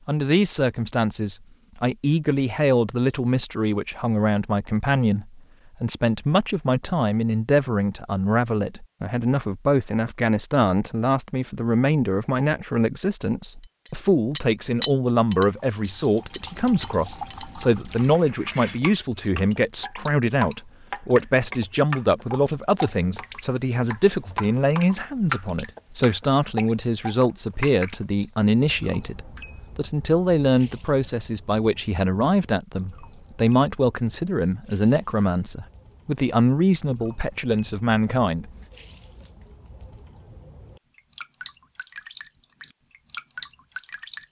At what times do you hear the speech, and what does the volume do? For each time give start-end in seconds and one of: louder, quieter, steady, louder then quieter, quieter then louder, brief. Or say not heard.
0.1-38.5 steady.